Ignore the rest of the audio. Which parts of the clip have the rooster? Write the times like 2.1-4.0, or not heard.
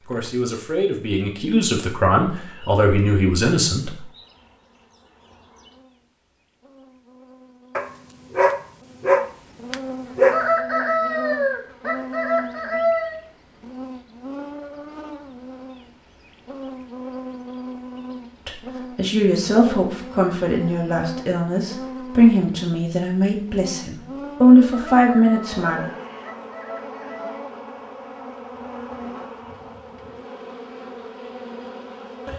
10.3-13.2, 24.7-27.4.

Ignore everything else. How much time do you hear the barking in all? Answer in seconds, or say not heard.
3 s.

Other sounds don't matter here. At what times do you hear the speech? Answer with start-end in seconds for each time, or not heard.
0.1-4.0, 18.4-25.9.